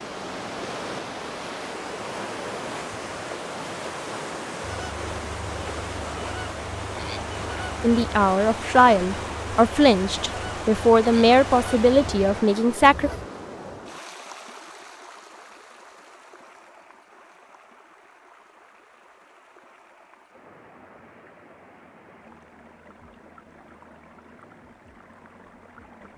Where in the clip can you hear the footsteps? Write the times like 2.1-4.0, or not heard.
not heard.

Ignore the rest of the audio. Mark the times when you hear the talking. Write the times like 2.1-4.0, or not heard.
7.8-13.1.